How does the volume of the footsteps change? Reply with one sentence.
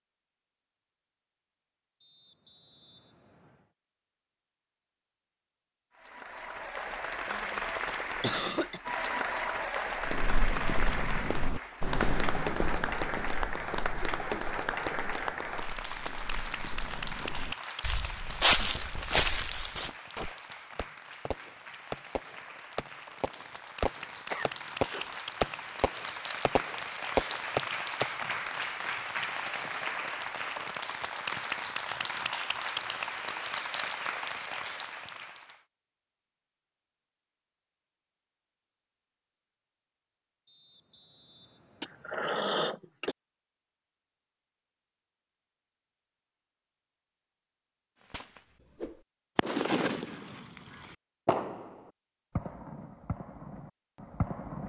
The volume of the footsteps goes down, then up.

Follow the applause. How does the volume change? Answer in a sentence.
The loudness of the applause goes down, then up.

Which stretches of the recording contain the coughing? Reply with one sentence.
The coughing can be heard from 7.8 to 8.8 s, from 24.3 to 25.1 s and from 41.8 to 43.1 s.